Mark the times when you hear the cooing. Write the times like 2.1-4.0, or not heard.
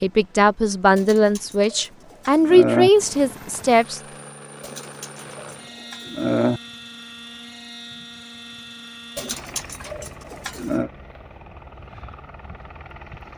0.9-2.9, 4.6-6.6, 9.2-10.9.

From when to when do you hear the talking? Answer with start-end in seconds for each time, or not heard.
0.0-4.0.